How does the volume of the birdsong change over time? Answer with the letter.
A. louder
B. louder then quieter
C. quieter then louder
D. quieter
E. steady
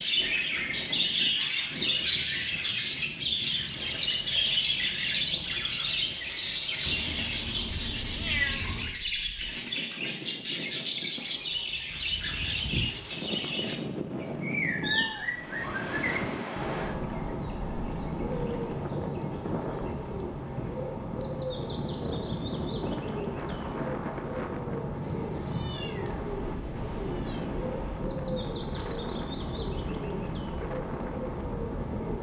D.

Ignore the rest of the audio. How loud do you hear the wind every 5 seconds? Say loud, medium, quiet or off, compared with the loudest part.
medium, medium, loud, loud, loud, loud, loud.